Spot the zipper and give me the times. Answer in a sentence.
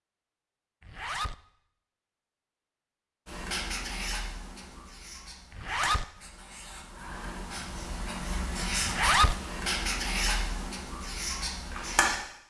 The zipper can be heard from 0.8 to 1.4 s, from 5.5 to 6.0 s and from 8.8 to 9.3 s.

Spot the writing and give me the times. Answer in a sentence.
The writing can be heard from 3.2 to 12.2 s.